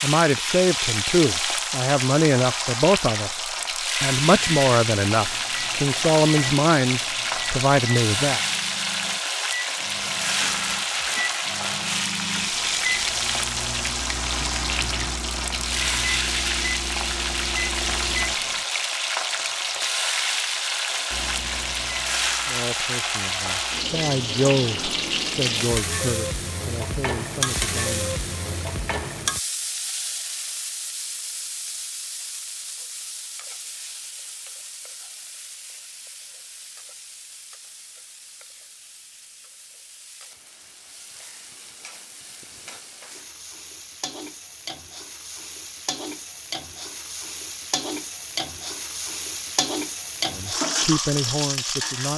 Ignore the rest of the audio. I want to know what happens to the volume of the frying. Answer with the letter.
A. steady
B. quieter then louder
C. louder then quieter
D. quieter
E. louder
B.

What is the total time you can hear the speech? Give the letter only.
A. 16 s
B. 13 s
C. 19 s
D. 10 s
A.